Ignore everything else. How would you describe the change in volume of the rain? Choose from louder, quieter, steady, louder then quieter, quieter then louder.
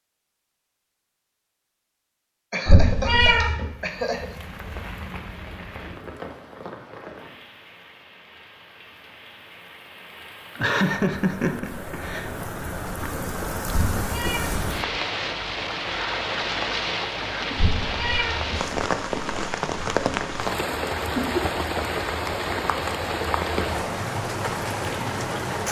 louder.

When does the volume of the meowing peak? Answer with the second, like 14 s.
3 s.